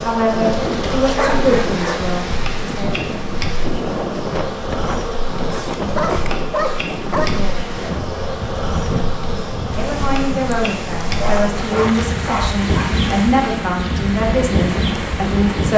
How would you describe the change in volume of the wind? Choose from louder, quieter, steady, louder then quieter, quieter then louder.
steady.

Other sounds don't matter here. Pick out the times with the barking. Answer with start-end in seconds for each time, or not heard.
0.5-2.0, 5.5-7.4, 11.1-12.9.